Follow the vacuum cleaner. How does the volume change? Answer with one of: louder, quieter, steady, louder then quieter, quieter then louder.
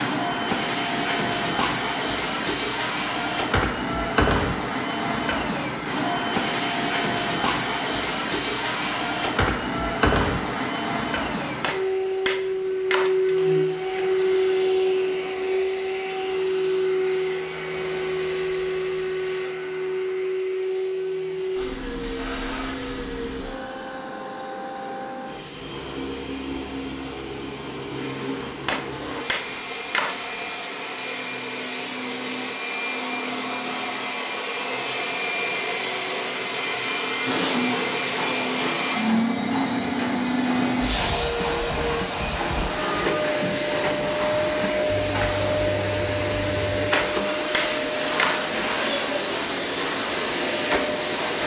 quieter then louder.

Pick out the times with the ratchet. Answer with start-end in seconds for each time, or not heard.
37.5-46.9.